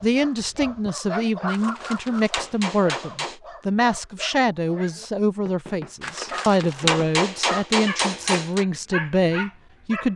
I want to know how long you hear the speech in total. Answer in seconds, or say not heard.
10 s.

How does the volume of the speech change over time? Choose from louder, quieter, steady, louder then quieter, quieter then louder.
steady.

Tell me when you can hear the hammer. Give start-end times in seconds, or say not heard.
1.4-3.4, 6.0-8.7.